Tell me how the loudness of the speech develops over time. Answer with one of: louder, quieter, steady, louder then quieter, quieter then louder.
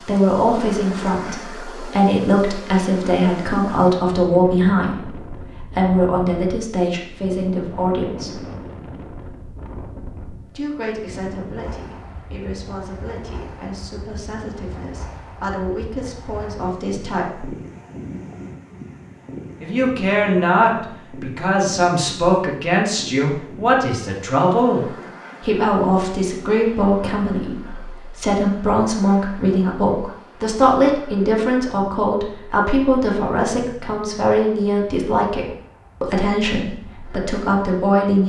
quieter then louder.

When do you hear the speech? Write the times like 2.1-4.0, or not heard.
0.0-8.4, 10.5-17.5, 19.6-38.2.